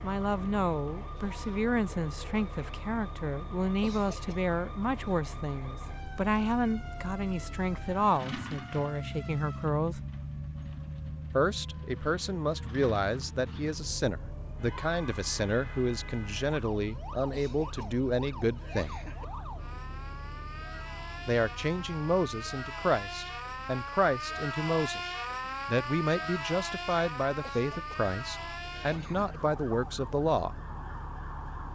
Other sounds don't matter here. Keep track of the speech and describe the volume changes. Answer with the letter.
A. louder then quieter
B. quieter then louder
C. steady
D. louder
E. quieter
C.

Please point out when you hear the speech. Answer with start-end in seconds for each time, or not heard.
0.0-10.1, 11.3-19.0, 21.2-25.0, 25.6-30.6.